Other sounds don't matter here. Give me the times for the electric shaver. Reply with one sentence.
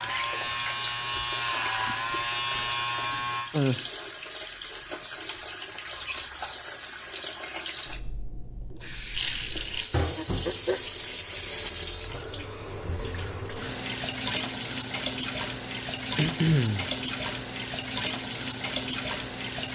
You can hear the electric shaver from 0.0 to 3.5 s.